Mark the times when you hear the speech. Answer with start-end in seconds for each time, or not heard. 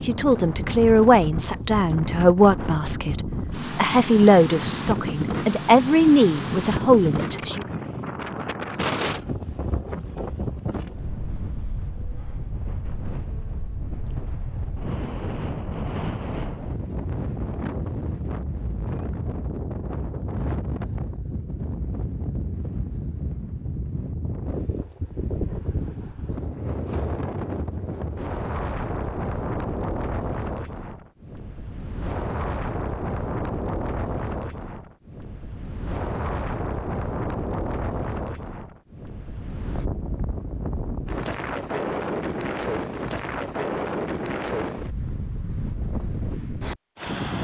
0.1-7.7.